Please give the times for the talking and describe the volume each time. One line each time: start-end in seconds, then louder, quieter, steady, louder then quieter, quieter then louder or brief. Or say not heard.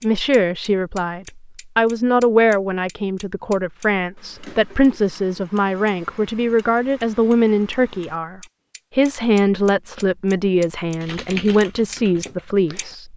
0.0-13.1 steady.